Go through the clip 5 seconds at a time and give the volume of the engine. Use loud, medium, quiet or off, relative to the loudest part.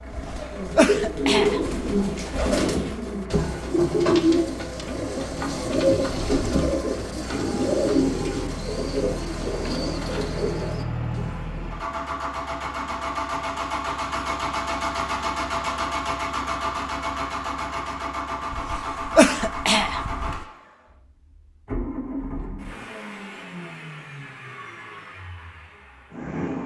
quiet, medium, loud, loud, medium, medium.